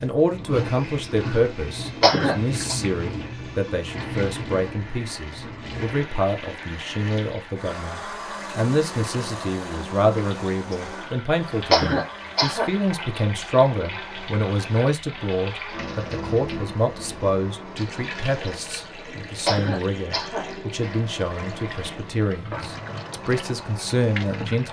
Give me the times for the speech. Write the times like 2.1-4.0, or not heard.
0.0-24.6.